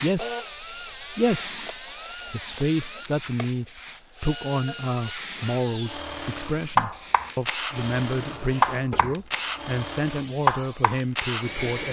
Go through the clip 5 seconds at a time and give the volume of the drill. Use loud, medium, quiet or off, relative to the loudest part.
medium, loud, loud.